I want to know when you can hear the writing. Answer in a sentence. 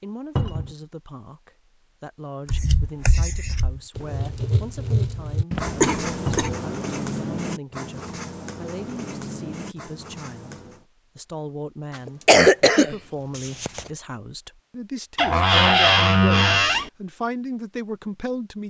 The writing can be heard from 2.5 to 10.8 s.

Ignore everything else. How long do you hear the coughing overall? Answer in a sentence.
You can hear the coughing for 3 seconds altogether.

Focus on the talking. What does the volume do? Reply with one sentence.
The loudness of the talking goes up.